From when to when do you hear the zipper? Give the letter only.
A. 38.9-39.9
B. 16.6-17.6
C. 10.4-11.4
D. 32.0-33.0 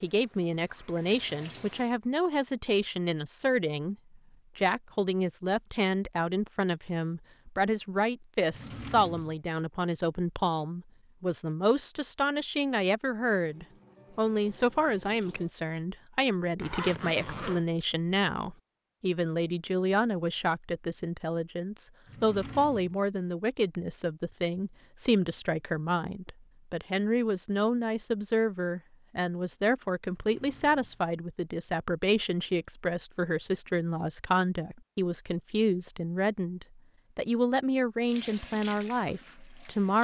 B.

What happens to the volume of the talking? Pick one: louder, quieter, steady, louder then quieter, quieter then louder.
steady.